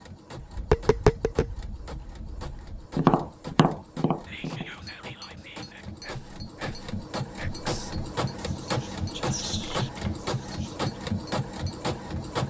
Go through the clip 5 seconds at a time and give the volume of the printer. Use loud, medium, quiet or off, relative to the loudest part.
quiet, loud, loud.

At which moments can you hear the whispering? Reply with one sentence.
You can hear the whispering from 4.2 to 10.9 s.